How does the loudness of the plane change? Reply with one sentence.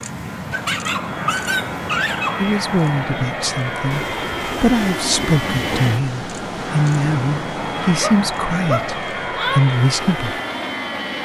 The volume of the plane stays about the same.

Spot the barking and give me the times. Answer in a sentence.
You can hear the barking from 0.5 to 2.5 s and from 8.0 to 9.6 s.